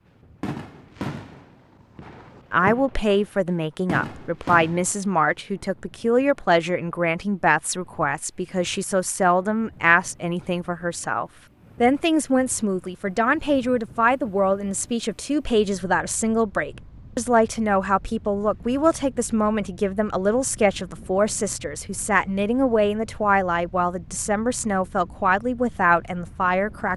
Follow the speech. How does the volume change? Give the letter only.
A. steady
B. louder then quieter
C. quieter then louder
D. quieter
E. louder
A.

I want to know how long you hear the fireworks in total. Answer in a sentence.
You can hear the fireworks for 5 seconds altogether.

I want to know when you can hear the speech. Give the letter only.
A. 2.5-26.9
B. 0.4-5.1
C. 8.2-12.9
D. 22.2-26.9
A.